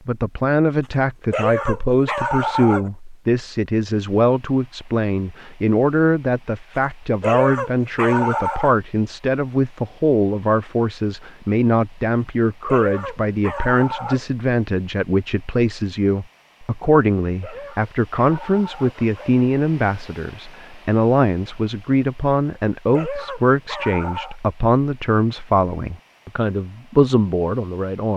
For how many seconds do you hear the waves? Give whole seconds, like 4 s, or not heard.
not heard.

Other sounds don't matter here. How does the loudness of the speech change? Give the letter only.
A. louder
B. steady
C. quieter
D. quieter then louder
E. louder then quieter
B.